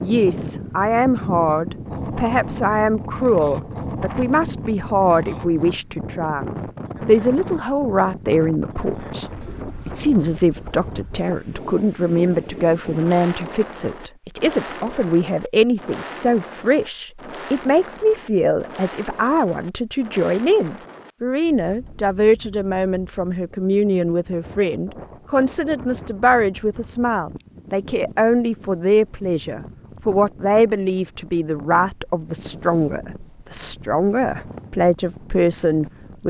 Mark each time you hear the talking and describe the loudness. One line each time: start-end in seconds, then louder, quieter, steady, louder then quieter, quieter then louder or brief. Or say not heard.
0.0-36.2 steady.